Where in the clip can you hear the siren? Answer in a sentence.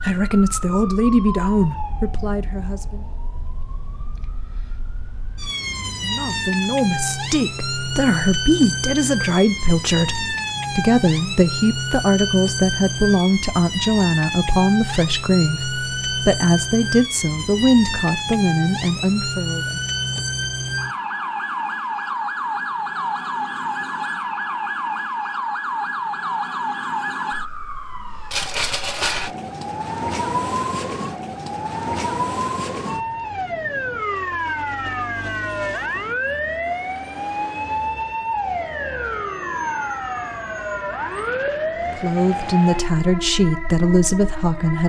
The siren can be heard from 0.0 to 44.8 s.